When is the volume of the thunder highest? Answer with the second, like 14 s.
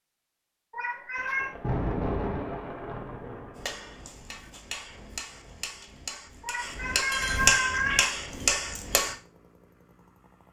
2 s.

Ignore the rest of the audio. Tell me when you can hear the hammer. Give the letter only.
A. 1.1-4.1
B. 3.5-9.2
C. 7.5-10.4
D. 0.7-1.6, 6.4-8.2
B.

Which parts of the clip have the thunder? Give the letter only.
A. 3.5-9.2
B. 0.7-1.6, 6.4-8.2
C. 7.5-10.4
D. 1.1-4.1
D.